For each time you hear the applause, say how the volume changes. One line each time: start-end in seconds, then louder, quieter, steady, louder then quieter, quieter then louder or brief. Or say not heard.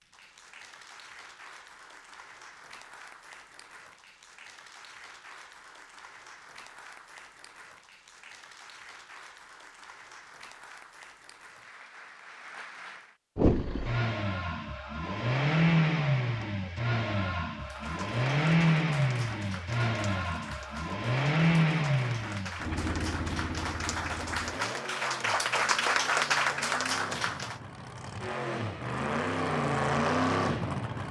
0.0-13.2 steady
17.6-27.6 louder.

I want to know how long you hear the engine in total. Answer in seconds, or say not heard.
18 s.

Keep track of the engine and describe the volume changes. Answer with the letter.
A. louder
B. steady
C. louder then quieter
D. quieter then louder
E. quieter
D.